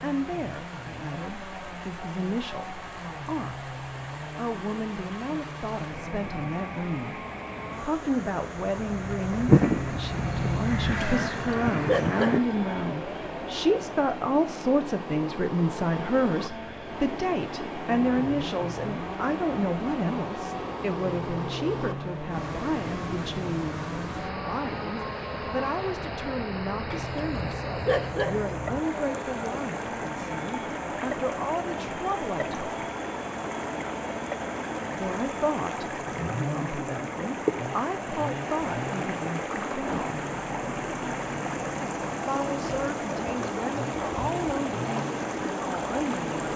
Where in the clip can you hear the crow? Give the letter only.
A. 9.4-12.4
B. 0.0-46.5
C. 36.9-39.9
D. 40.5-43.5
A.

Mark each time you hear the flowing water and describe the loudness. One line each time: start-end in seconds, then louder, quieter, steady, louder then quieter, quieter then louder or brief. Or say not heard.
0.0-46.5 louder.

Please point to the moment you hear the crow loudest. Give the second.
10 s.